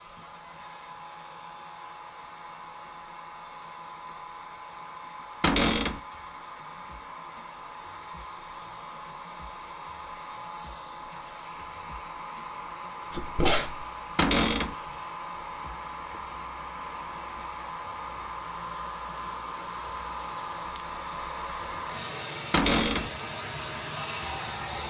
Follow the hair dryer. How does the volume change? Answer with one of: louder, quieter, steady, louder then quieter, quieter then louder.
louder.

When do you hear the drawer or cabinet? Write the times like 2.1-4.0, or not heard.
5.4-6.0, 14.2-14.8, 22.5-23.1.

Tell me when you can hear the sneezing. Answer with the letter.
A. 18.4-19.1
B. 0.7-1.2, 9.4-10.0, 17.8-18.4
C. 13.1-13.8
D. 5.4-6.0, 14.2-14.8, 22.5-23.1
C.